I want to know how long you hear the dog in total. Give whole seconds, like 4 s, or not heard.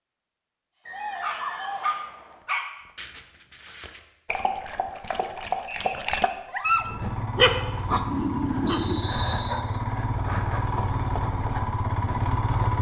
9 s.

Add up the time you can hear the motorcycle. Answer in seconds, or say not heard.
6 s.